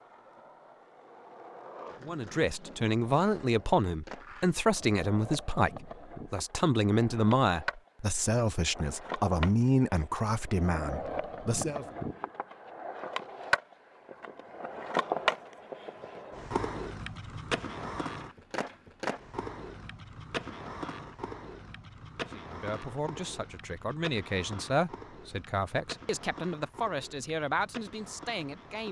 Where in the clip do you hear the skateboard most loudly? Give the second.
15 s.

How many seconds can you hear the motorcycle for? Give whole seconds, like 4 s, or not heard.
not heard.